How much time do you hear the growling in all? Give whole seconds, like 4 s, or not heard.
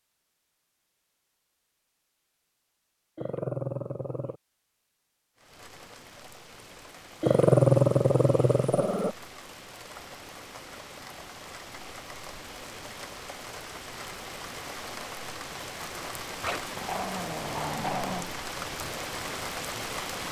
5 s.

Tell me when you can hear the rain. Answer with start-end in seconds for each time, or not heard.
5.3-20.2.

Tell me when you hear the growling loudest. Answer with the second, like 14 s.
8 s.